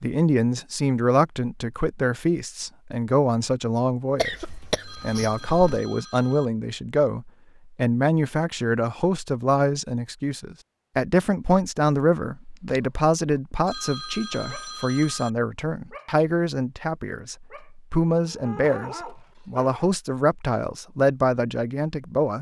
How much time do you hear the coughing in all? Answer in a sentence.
The coughing can be heard for 2 seconds in total.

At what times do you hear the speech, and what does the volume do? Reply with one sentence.
You can hear the speech from 0.0 to 22.3 s, at a steady volume.